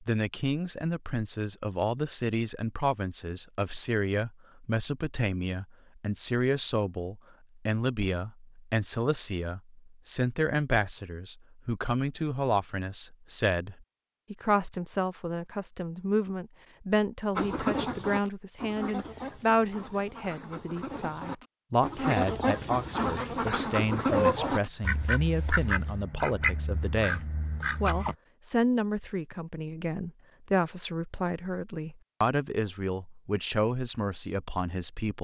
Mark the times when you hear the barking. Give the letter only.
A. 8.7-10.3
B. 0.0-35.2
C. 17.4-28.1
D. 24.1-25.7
D.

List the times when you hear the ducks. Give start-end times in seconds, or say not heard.
17.4-28.1.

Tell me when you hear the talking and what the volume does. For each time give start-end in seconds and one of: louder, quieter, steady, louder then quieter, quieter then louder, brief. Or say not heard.
0.0-35.2 steady.